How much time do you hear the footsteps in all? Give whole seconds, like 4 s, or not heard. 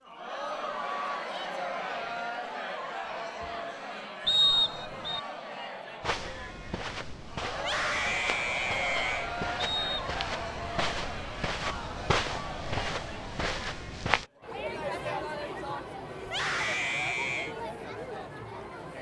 8 s.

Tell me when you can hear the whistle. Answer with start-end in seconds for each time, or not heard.
4.2-5.2, 9.6-10.1.